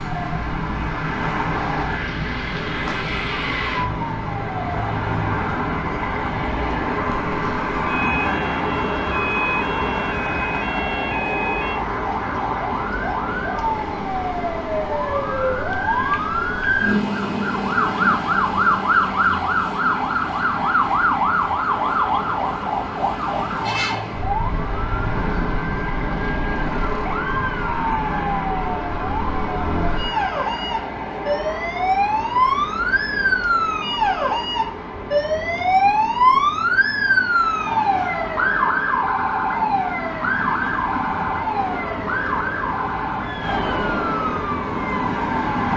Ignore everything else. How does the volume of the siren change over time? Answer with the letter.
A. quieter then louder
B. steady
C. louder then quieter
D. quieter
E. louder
E.